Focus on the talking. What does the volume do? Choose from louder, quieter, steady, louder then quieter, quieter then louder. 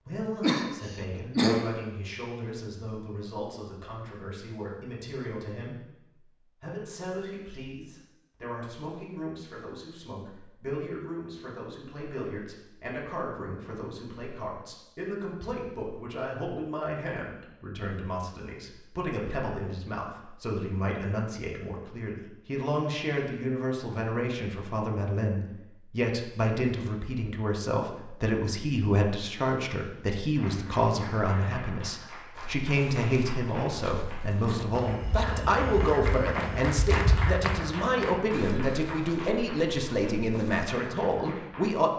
louder.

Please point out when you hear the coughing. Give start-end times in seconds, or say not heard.
0.4-1.6.